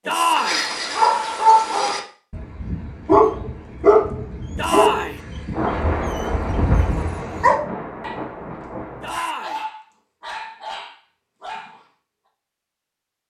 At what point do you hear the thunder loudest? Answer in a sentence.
The loudest moment of the thunder is at 6 seconds.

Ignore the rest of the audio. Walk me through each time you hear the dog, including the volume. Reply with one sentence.
The dog can be heard from 0.1 to 8.2 s, getting quieter then louder; and briefly from 9.1 to 11.8 s.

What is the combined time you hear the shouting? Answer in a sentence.
You can hear the shouting for 2 seconds altogether.